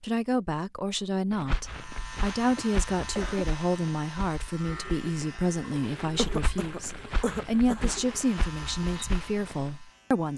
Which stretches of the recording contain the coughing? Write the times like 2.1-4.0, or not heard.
2.5-3.5, 6.2-8.0.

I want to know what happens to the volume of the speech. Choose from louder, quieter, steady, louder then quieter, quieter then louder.
steady.